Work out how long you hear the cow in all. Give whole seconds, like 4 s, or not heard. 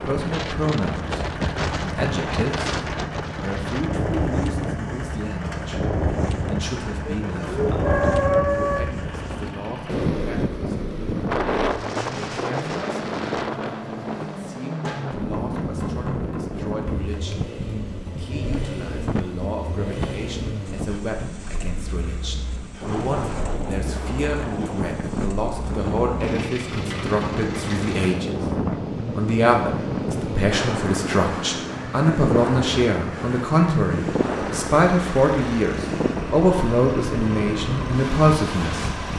2 s.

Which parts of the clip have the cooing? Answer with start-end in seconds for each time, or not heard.
not heard.